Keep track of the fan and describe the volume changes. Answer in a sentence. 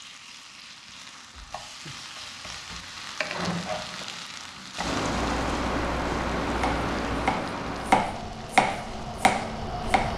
The volume of the fan goes down.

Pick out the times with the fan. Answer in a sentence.
You can hear the fan from 4.8 to 10.1 s.